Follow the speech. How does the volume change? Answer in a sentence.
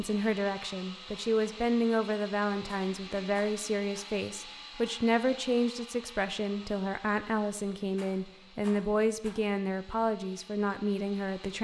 The volume of the speech stays about the same.